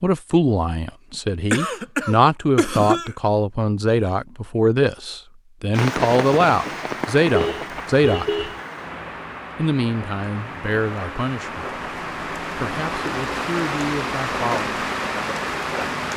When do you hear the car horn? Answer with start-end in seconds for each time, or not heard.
7.3-8.6.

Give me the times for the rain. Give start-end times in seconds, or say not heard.
5.7-16.1.